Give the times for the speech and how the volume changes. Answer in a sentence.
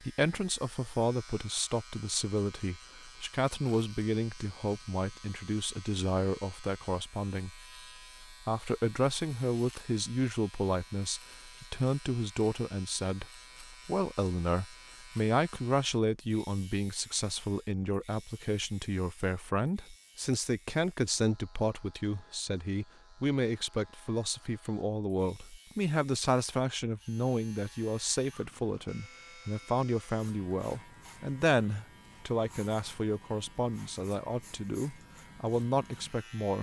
The speech can be heard from 0.0 to 36.5 s, at a steady volume.